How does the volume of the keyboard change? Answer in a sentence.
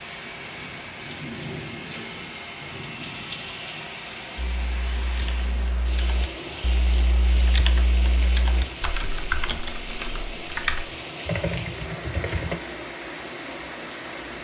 The volume of the keyboard goes up.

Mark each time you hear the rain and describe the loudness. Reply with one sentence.
The rain can be heard from 0.0 to 14.3 s, at a steady volume.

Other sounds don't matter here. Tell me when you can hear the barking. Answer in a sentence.
The barking can't be heard in this clip.